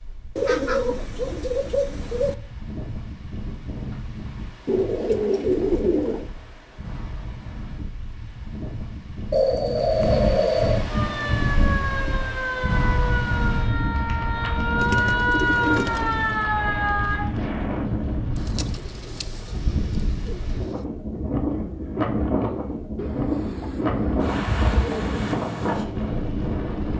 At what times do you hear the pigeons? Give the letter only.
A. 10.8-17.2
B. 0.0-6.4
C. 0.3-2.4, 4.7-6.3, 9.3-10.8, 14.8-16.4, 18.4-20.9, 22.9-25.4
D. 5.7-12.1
C.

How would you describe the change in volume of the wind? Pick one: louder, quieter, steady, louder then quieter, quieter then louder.
louder.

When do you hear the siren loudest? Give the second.
15 s.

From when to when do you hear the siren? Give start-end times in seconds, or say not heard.
10.8-17.2.